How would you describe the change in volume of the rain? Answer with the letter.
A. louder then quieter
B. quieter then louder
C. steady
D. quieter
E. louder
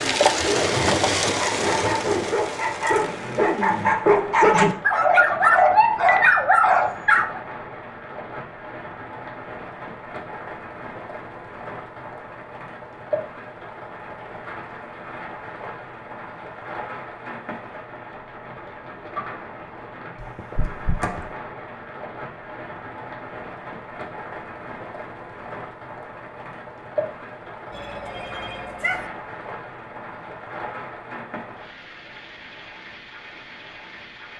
D.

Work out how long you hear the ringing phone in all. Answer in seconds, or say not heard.
3 s.